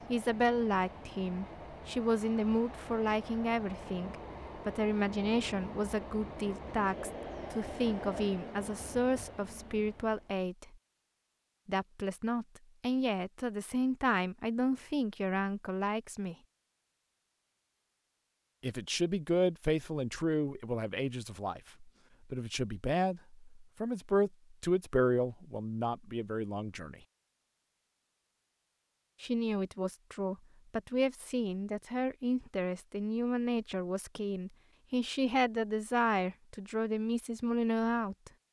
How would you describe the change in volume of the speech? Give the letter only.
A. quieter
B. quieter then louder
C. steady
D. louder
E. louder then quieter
C.